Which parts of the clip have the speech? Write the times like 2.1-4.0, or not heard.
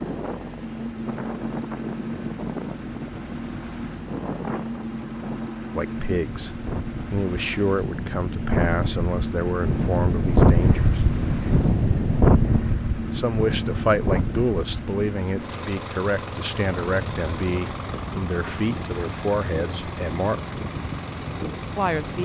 5.7-11.0, 13.1-20.6, 21.8-22.2.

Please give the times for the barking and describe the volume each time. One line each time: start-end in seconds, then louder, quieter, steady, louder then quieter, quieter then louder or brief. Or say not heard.
not heard.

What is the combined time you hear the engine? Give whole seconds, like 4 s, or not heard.
22 s.